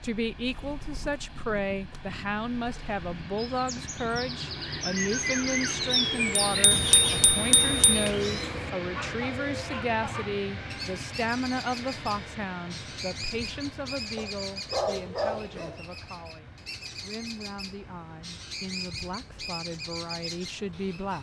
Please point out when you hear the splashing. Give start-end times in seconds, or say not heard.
not heard.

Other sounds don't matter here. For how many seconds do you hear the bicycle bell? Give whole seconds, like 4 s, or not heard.
2 s.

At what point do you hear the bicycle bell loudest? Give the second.
7 s.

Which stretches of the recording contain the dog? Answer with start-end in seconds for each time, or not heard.
14.2-16.1.